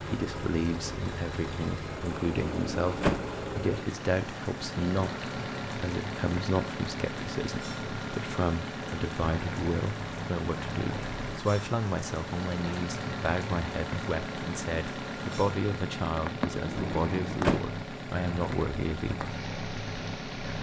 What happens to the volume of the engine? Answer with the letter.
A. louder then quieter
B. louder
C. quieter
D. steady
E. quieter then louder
D.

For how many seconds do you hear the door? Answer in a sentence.
You can hear the door for 2 seconds altogether.